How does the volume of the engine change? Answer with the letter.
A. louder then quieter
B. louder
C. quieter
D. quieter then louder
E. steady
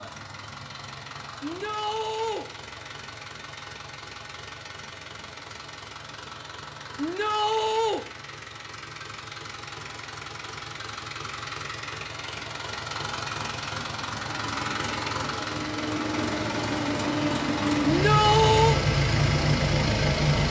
B.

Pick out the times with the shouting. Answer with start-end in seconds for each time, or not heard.
1.4-2.5, 7.0-8.1, 17.8-18.8.